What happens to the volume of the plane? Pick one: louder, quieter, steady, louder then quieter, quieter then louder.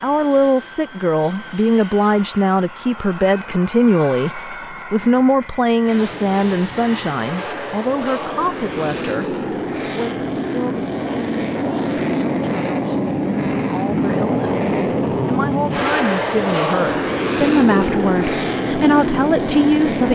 louder.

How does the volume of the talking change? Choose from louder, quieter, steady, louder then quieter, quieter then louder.
quieter then louder.